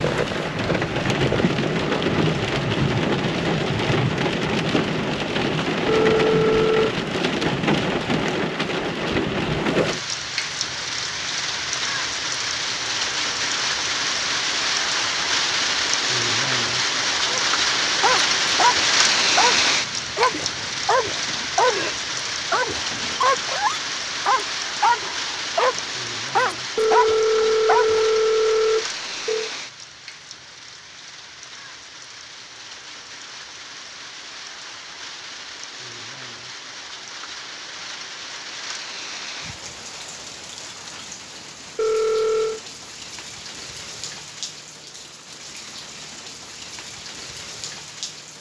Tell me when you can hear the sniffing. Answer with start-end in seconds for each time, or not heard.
not heard.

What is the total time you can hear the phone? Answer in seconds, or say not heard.
5 s.